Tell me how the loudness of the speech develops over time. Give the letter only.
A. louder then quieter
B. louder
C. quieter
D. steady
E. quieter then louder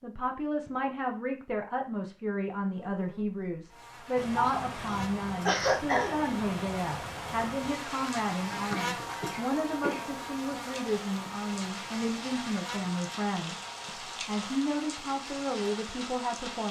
D.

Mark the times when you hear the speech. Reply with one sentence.
You can hear the speech from 0.0 to 16.6 s.